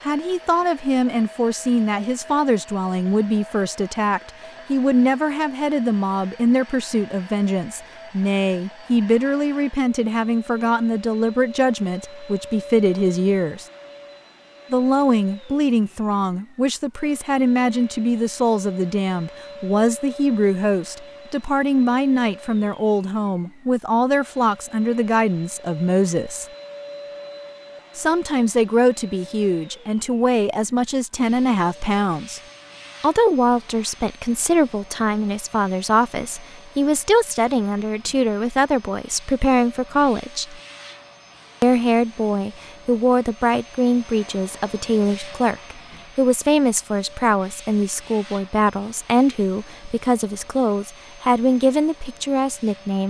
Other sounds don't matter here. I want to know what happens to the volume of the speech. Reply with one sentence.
The volume of the speech stays about the same.